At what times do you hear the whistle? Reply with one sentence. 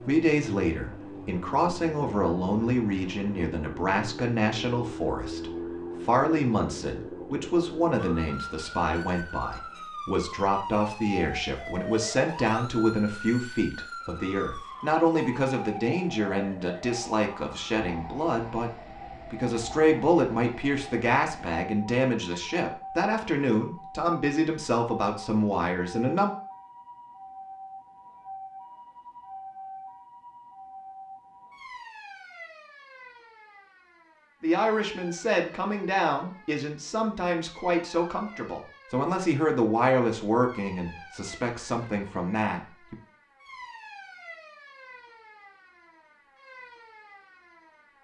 You can't hear the whistle here.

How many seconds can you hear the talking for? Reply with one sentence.
You can hear the talking for 34 seconds altogether.